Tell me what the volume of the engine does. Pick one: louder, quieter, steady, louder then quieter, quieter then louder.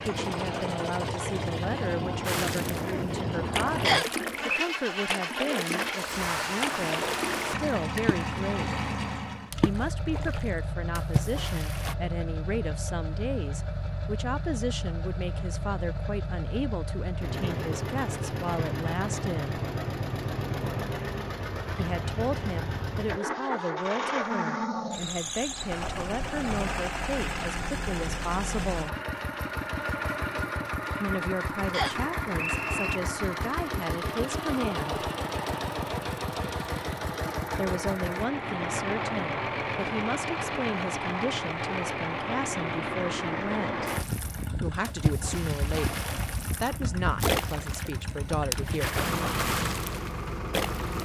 steady.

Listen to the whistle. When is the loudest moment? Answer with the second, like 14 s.
4 s.